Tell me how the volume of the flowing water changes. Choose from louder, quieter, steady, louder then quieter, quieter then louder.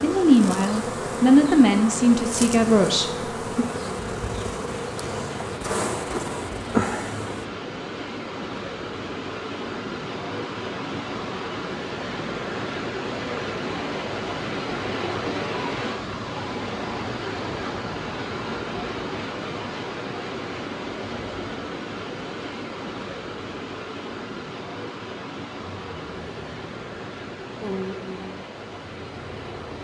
louder then quieter.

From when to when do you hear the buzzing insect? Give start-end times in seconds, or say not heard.
0.0-7.5, 25.6-29.7.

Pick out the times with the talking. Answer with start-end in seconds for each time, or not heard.
0.0-3.6.